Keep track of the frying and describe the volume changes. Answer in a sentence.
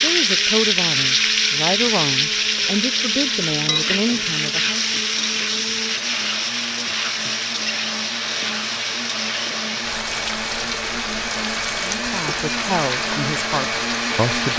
The volume of the frying goes down.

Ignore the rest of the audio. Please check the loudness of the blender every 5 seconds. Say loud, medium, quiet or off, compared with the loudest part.
medium, medium, loud.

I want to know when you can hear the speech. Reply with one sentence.
The speech can be heard from 0.0 to 4.8 s and from 11.8 to 14.5 s.